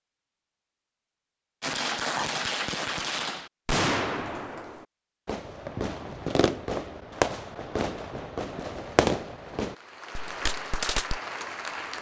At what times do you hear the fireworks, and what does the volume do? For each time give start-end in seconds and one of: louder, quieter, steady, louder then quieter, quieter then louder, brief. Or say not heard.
1.6-11.2 steady.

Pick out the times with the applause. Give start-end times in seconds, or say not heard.
8.7-11.9.